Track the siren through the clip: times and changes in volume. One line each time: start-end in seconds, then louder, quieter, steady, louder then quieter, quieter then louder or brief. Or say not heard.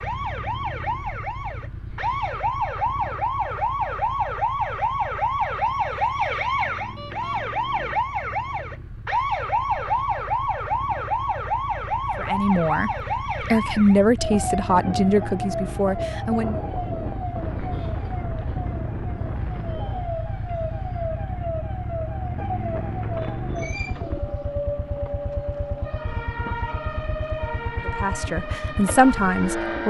0.0-29.8 quieter.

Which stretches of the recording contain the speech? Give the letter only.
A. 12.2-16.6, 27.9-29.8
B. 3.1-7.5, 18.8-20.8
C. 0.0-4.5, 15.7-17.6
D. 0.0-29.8
A.